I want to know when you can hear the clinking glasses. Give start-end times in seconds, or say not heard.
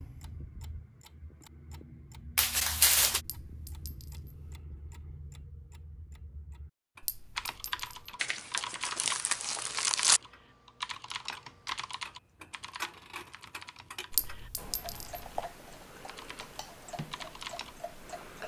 3.2-4.5, 7.0-8.2, 14.1-15.2.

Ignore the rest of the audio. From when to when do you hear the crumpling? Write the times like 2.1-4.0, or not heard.
2.4-3.2, 8.2-10.2, 12.4-14.3.